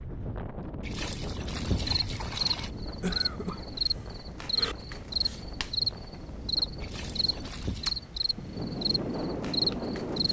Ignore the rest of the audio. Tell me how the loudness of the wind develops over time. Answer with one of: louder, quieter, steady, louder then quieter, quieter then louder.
quieter then louder.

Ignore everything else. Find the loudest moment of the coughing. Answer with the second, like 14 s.
3 s.